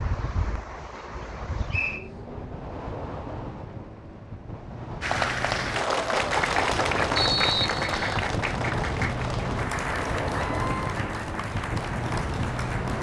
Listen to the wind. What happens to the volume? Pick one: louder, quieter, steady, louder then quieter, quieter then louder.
louder.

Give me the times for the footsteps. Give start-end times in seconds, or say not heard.
not heard.